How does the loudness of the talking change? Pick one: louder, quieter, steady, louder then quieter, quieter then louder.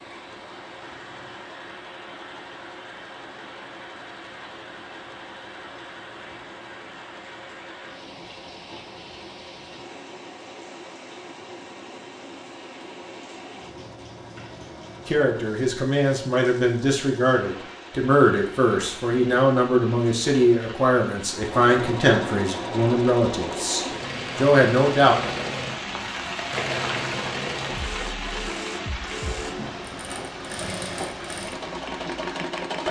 steady.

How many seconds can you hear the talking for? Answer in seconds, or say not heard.
10 s.